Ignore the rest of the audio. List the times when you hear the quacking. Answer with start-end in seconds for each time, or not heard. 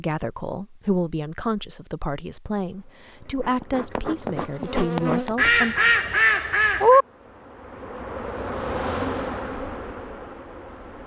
5.3-7.0.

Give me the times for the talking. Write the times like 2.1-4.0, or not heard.
0.0-5.8.